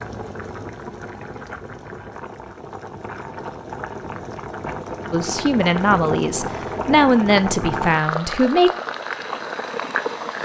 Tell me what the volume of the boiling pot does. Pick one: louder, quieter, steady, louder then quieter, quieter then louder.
louder.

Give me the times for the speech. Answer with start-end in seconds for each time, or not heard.
5.1-8.7.